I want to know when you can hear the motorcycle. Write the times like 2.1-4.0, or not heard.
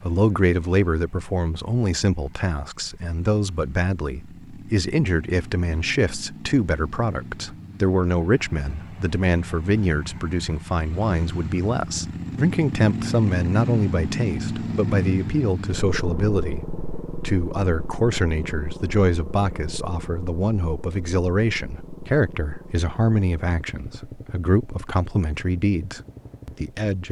0.0-27.0.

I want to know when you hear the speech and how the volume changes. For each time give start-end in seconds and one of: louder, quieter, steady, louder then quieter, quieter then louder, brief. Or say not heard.
0.0-27.0 steady.